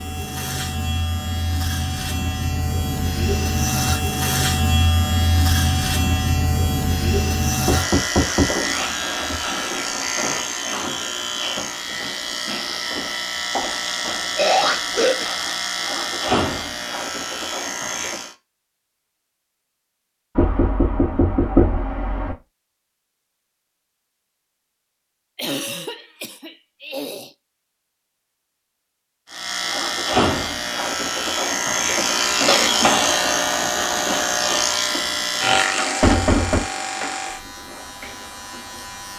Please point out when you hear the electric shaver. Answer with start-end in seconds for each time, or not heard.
0.0-18.4, 29.2-39.1.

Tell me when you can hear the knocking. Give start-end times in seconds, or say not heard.
7.7-9.4, 20.4-22.4, 36.0-36.6.